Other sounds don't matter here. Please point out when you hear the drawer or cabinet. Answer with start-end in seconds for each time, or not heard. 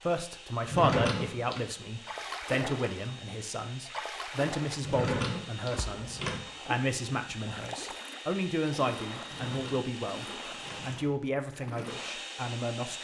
0.7-1.6, 4.8-6.4, 9.2-11.0.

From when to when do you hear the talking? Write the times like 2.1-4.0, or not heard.
0.0-12.9.